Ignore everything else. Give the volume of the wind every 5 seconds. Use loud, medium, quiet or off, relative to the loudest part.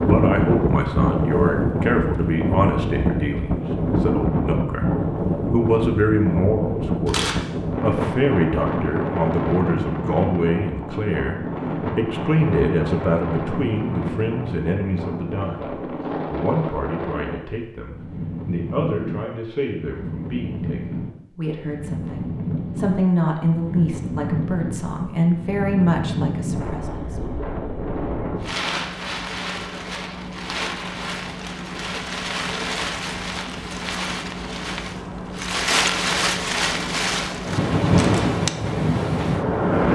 loud, loud, medium, medium, medium, medium, medium, loud.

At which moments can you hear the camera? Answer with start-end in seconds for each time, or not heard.
7.0-7.5, 37.8-38.3.